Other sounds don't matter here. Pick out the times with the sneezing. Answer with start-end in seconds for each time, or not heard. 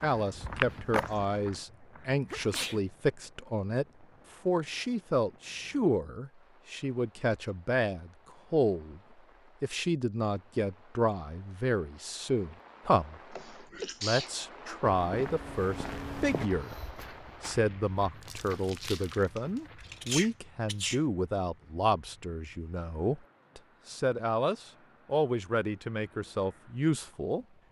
2.3-2.8, 13.3-14.8, 20.0-21.0.